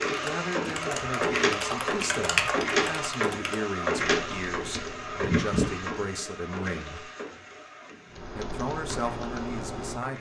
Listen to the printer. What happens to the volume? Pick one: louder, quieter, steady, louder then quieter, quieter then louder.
quieter.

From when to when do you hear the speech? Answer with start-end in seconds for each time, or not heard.
0.0-7.1, 8.3-10.1.